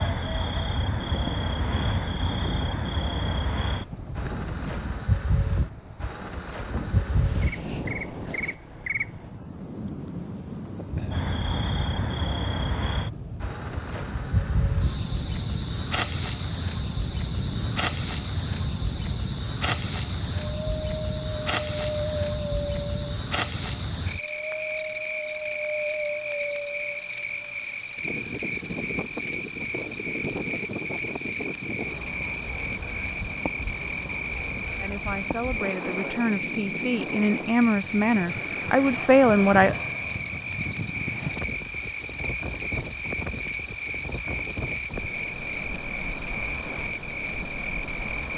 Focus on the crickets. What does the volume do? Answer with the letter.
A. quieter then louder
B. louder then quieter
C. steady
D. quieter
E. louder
C.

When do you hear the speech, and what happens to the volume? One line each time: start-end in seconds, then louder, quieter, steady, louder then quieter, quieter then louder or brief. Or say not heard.
34.8-39.8 louder.